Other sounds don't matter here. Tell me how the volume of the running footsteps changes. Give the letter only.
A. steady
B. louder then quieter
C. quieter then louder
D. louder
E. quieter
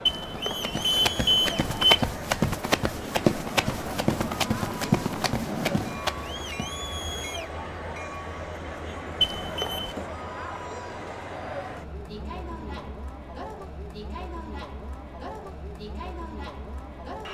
B.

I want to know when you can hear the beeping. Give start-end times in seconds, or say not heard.
0.1-2.0, 9.2-9.9.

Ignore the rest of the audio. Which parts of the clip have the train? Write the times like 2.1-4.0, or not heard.
0.0-12.9.